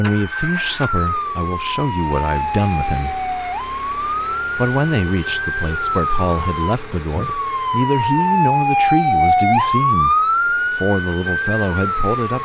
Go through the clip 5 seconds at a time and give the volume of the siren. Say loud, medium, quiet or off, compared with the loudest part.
medium, loud, loud.